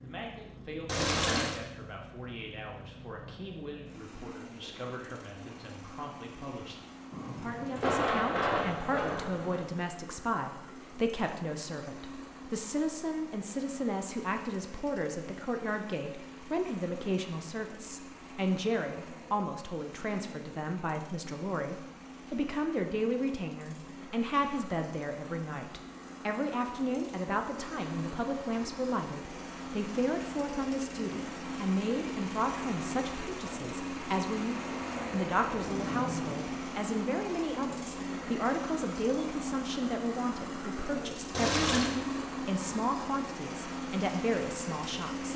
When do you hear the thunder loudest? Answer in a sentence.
The volume of the thunder peaks at 8 seconds.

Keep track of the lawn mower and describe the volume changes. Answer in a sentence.
The volume of the lawn mower goes up.